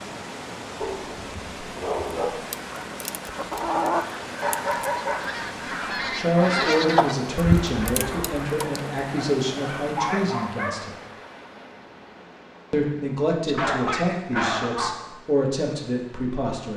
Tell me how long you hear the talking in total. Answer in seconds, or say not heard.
9 s.